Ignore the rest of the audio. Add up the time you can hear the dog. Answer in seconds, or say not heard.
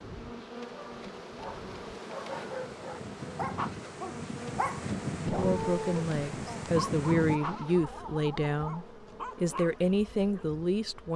10 s.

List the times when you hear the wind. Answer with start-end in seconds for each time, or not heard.
0.0-7.4.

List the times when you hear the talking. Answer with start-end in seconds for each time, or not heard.
5.2-11.1.